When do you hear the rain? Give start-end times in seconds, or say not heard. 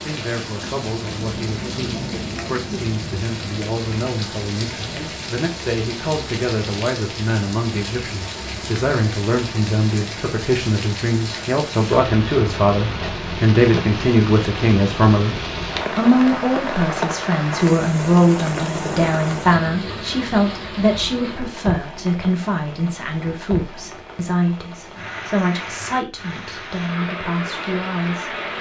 0.0-28.5.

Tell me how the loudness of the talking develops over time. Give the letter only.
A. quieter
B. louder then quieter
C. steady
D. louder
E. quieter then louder
B.